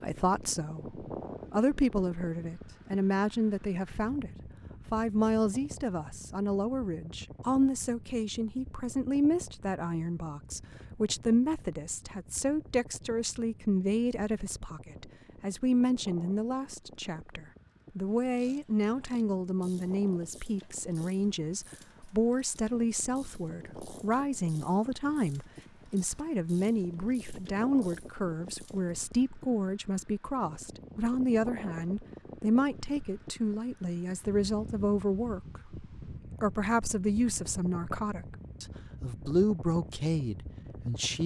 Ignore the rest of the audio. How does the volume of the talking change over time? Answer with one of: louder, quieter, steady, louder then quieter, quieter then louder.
steady.